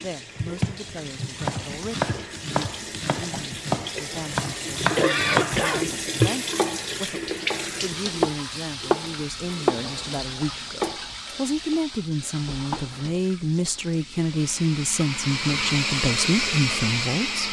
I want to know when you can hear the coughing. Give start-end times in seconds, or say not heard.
4.0-5.8.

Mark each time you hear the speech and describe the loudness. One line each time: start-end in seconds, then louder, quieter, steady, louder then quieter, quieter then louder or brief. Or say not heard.
0.0-17.4 louder.